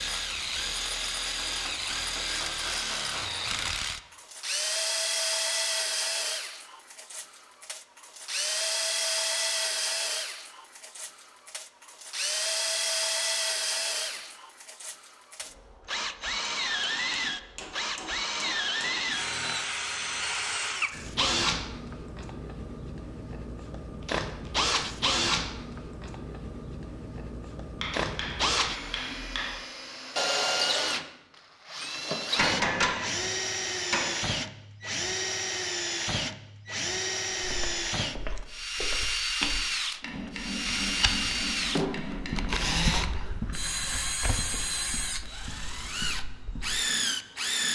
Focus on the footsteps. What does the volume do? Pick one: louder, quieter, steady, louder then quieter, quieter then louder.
louder then quieter.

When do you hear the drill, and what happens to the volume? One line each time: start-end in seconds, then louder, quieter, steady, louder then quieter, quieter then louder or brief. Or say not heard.
0.0-47.7 steady.